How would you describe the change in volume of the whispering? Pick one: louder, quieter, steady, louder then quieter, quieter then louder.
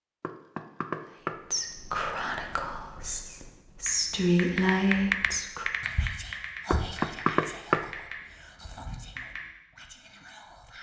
louder then quieter.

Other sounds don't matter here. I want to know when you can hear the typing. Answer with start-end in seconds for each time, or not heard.
3.8-9.5.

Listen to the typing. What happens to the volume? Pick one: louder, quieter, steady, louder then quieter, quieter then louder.
quieter.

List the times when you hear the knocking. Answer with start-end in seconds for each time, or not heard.
0.2-1.4, 6.7-7.8.